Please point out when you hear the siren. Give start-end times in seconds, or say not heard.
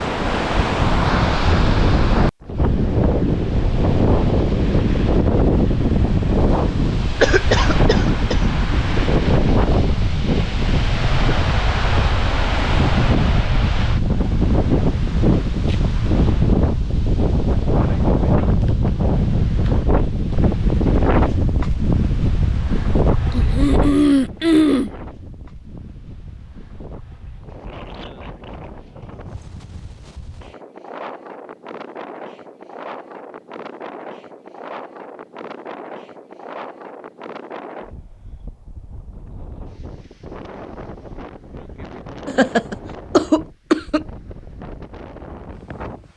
not heard.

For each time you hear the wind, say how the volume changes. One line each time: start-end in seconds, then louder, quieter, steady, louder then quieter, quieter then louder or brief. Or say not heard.
0.0-46.1 quieter.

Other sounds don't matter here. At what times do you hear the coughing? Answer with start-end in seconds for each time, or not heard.
7.2-8.4, 23.3-24.9, 42.2-44.0.